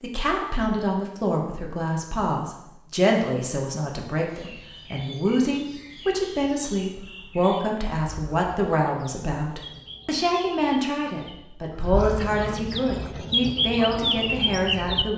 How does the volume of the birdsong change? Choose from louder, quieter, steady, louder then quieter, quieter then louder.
louder.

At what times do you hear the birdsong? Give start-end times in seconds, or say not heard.
4.2-15.1.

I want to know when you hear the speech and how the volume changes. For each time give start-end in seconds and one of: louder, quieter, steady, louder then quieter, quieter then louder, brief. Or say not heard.
0.0-15.1 steady.